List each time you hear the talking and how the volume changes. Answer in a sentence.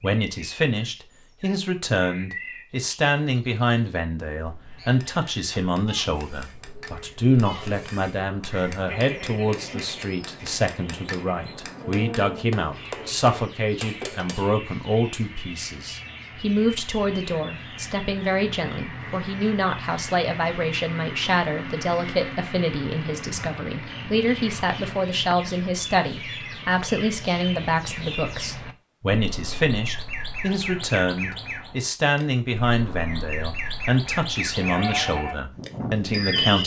You can hear the talking from 0.0 to 36.6 s, at a steady volume.